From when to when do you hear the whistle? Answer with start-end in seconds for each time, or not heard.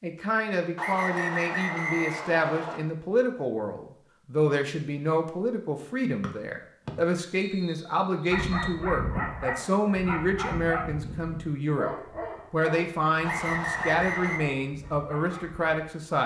0.8-2.8, 6.2-8.8, 13.2-14.4.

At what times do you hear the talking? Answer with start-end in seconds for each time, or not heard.
0.0-11.9, 12.5-16.2.